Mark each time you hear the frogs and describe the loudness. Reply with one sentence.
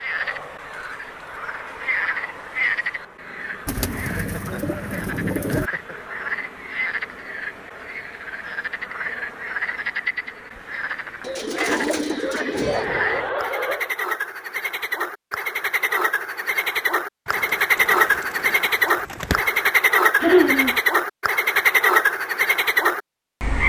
The frogs can be heard from 0.0 to 23.6 s, getting louder.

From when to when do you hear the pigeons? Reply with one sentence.
The pigeons can be heard from 3.6 to 5.7 s, from 11.2 to 12.8 s and from 17.2 to 19.6 s.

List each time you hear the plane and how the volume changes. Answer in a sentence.
You can't hear the plane here.